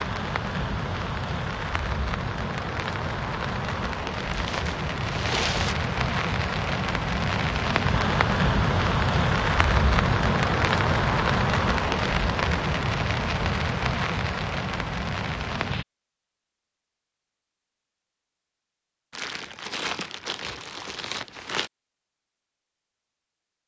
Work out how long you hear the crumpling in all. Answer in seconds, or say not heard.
4 s.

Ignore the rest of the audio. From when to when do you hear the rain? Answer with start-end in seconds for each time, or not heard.
0.0-15.8.